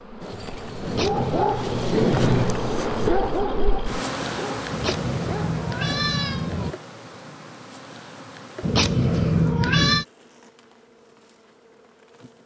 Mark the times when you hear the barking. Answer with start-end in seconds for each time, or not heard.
0.2-6.8.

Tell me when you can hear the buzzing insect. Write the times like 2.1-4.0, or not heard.
0.0-12.4.